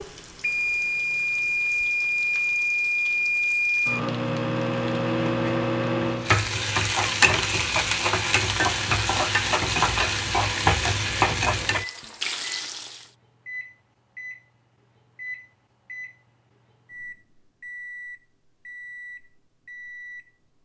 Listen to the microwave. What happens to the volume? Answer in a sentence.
The volume of the microwave goes down.